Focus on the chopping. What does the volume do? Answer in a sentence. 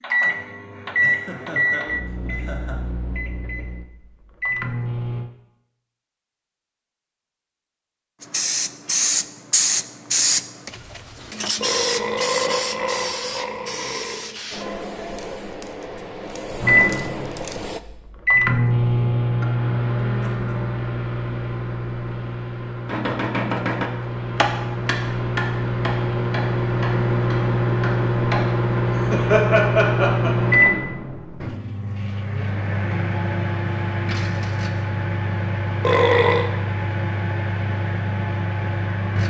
The volume of the chopping goes down.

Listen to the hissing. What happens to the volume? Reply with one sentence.
The loudness of the hissing goes down.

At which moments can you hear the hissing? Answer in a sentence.
You can hear the hissing from 8.2 to 17.8 s.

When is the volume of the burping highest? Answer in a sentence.
The volume of the burping peaks at 36 seconds.